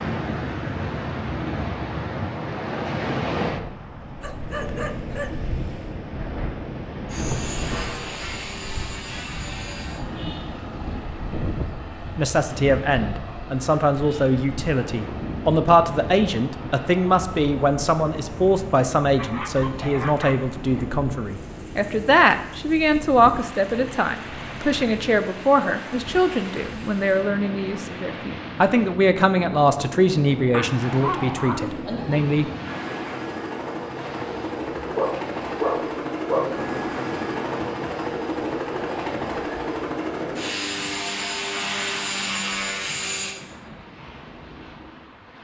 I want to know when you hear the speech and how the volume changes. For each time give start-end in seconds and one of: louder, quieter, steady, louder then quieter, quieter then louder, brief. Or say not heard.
11.9-32.5 steady.